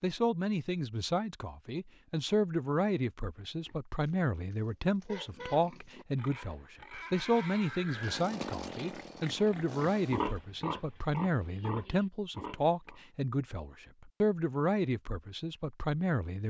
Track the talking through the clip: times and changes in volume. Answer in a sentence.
You can hear the talking from 0.0 to 16.4 s, at a steady volume.